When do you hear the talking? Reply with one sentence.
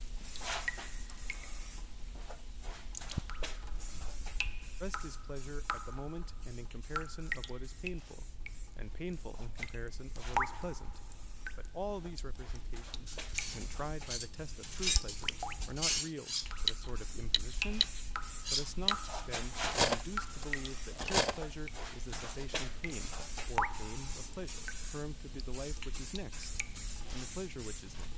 The talking can be heard from 4.8 to 28.1 s.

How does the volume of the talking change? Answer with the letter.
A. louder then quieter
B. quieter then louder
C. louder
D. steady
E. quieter
D.